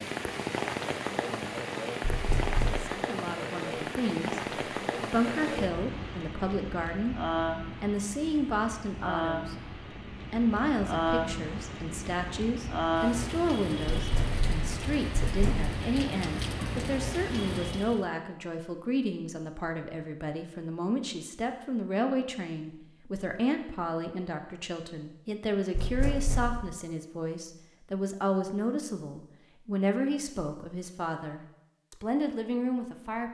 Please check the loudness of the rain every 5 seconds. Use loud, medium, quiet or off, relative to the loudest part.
loud, loud, loud, loud, off, off, off.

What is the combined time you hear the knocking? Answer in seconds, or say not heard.
4 s.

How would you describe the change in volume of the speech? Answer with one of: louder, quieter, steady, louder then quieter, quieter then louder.
steady.